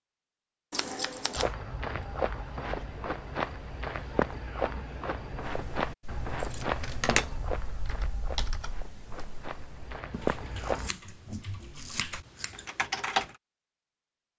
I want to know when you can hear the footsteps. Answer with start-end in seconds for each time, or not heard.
1.4-10.9.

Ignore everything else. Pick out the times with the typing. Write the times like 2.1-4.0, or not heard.
5.3-13.3.